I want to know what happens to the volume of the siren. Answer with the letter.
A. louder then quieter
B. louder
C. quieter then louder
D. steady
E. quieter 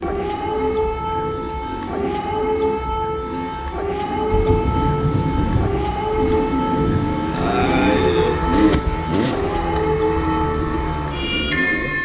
D.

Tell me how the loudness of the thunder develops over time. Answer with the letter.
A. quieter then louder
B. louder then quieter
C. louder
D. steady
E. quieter
A.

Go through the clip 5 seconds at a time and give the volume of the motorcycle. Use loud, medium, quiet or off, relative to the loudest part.
medium, loud, loud.